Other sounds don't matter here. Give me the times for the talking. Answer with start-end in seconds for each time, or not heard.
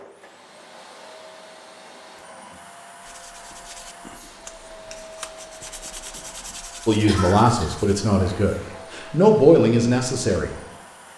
6.8-10.5.